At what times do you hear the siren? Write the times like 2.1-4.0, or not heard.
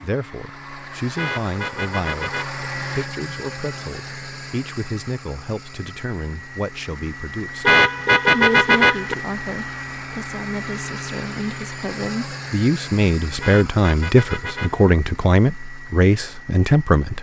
not heard.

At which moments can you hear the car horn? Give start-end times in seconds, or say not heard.
1.1-2.6, 7.6-9.2, 13.4-14.9.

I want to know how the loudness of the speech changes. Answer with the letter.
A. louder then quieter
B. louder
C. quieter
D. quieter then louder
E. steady
B.